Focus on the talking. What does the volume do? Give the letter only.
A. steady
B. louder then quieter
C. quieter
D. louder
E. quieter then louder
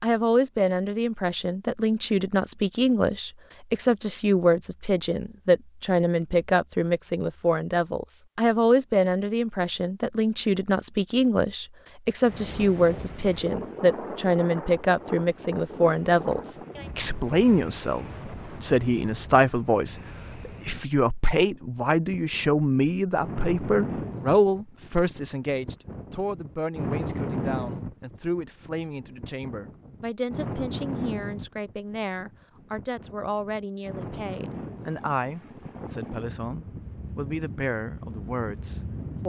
C.